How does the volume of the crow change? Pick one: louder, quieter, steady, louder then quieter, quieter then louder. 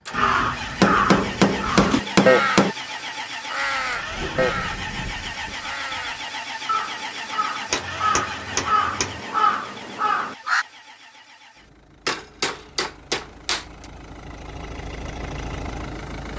quieter then louder.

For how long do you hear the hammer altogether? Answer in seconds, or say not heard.
5 s.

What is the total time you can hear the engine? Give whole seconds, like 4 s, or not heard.
16 s.